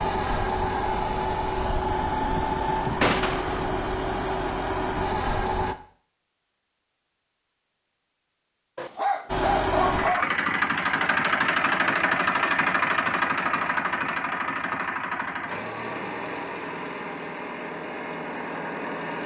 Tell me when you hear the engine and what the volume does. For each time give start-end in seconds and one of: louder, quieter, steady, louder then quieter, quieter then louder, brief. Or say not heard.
0.0-5.8 steady
9.2-19.2 quieter.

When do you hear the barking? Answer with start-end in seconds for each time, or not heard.
8.8-10.3.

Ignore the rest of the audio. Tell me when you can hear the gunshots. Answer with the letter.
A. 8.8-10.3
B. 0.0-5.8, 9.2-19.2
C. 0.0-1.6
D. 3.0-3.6
D.